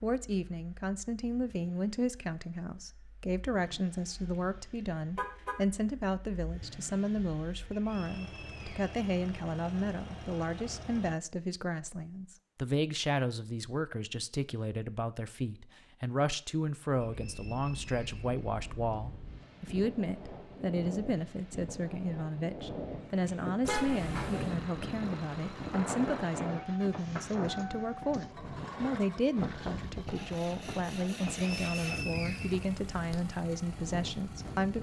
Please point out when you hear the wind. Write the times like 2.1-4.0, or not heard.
17.1-34.7.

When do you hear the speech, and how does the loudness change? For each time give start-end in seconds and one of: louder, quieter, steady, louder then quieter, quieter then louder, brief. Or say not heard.
0.0-34.7 steady.